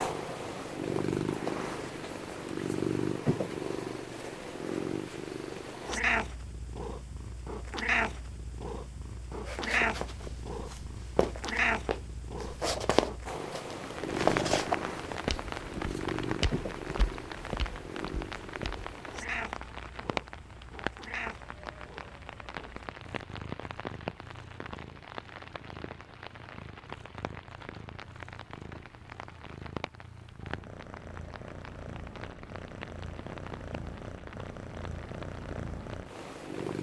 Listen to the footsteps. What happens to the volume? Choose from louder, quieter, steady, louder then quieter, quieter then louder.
louder then quieter.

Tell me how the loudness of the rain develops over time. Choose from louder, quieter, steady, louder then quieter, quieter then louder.
quieter.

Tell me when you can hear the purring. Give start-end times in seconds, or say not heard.
0.0-36.7.